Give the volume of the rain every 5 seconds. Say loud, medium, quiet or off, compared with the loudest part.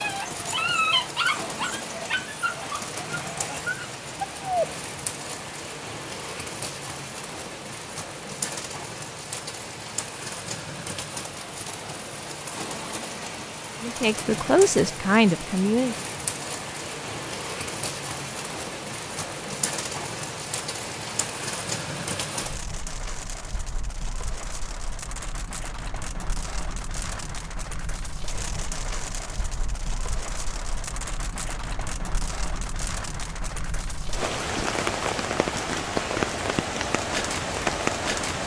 medium, medium, medium, medium, medium, medium, medium, loud.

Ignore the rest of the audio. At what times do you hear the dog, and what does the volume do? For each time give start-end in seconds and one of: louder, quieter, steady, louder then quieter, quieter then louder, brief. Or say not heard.
0.0-4.7 quieter then louder.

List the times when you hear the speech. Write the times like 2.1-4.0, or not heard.
13.8-15.9.